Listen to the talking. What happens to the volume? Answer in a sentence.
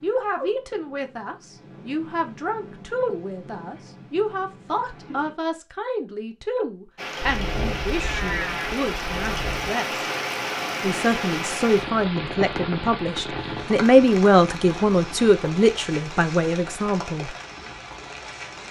The loudness of the talking goes up.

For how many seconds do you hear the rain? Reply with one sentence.
The rain can be heard for 12 seconds in total.